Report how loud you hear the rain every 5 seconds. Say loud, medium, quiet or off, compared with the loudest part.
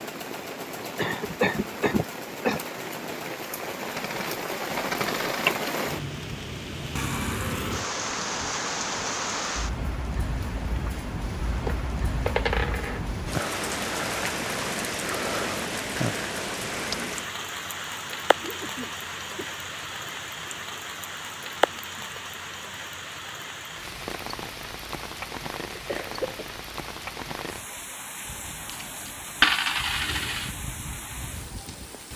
medium, loud, loud, loud, medium, medium, medium.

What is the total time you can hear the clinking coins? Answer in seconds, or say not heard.
5 s.